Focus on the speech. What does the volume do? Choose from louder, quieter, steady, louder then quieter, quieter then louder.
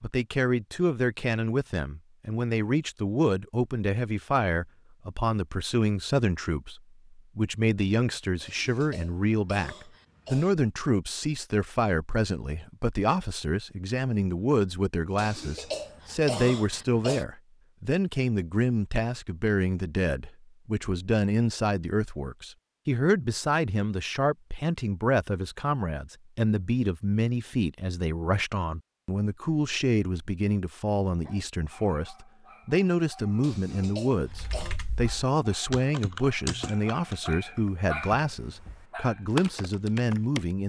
steady.